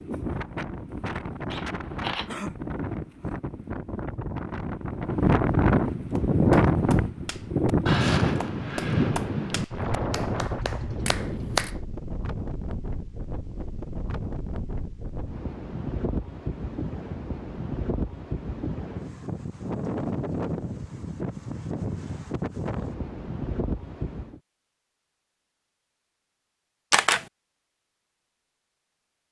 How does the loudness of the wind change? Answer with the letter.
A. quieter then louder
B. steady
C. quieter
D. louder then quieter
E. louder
D.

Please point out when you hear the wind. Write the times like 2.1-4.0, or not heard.
0.0-24.4.